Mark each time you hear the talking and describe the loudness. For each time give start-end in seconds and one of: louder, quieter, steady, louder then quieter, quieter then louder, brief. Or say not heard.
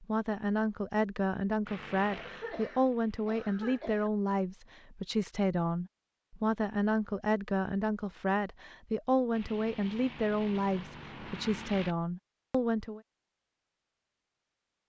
0.0-13.0 steady.